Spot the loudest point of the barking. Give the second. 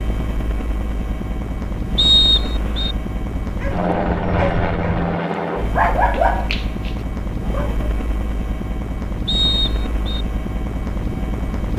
6 s.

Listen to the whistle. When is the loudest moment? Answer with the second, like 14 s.
2 s.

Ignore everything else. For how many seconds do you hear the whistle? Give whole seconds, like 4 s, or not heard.
2 s.